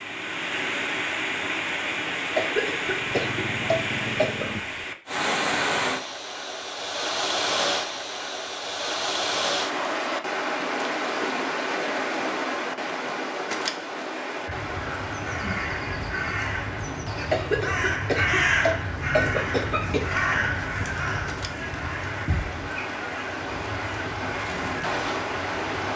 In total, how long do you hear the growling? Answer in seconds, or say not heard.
2 s.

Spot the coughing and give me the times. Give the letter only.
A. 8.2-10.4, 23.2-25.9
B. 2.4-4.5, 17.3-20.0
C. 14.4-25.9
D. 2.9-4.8
B.